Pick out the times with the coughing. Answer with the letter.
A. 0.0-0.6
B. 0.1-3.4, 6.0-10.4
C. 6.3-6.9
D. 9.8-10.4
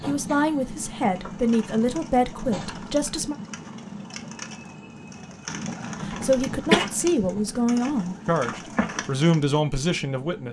C.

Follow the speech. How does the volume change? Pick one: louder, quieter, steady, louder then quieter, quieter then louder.
steady.